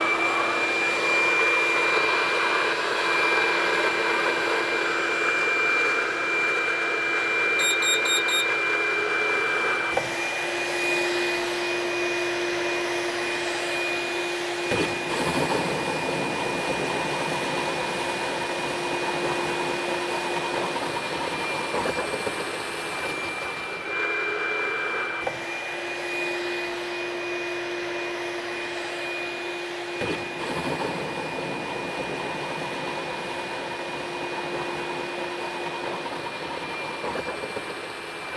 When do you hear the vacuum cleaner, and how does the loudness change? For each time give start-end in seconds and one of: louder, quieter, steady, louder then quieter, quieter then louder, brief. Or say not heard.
0.0-38.3 quieter.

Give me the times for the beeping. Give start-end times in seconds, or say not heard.
7.5-8.4.